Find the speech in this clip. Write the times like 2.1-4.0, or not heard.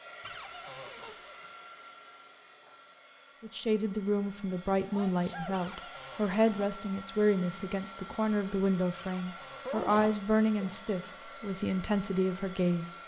3.4-13.0.